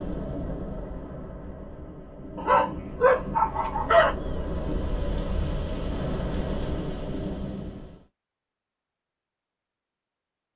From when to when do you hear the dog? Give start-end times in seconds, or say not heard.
2.4-4.2.